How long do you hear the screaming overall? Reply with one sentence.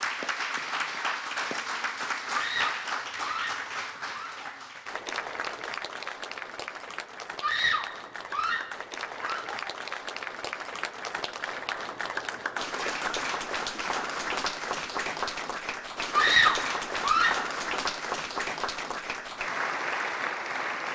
The screaming can be heard for 6 seconds in total.